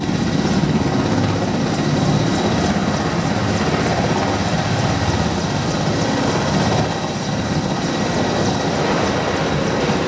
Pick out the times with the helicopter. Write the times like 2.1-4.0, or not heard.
0.0-10.0.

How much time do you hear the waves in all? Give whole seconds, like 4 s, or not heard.
10 s.